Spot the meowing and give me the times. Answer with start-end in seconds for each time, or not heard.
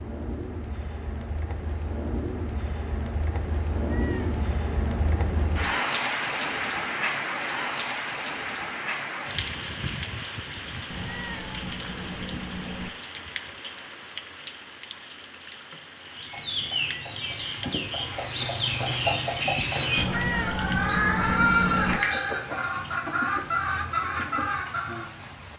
3.8-5.8, 10.9-12.9, 19.9-22.0.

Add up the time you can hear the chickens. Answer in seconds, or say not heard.
9 s.